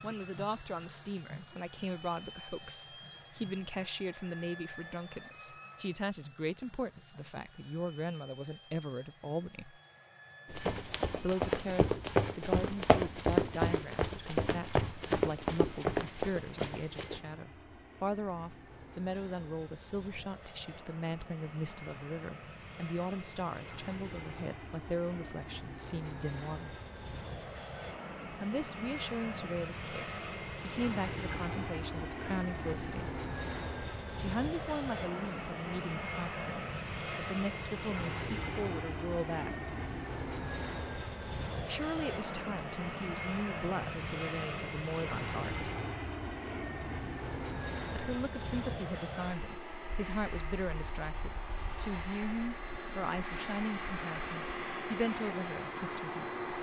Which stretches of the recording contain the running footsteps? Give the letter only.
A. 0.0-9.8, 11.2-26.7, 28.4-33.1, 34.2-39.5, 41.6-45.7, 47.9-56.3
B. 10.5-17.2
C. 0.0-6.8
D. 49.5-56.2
B.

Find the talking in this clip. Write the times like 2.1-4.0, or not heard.
0.0-9.8, 11.2-26.7, 28.4-33.1, 34.2-39.5, 41.6-45.7, 47.9-56.3.